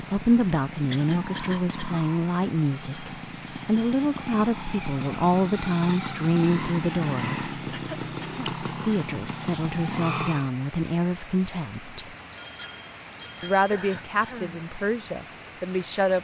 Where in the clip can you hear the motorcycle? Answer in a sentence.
The motorcycle can be heard from 0.0 to 10.5 s.